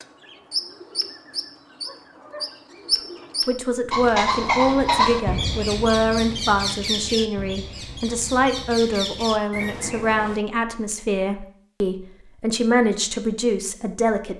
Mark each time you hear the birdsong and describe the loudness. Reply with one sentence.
You can hear the birdsong from 0.0 to 10.4 s, getting louder then quieter.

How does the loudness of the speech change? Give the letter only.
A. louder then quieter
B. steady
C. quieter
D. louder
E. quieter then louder
B.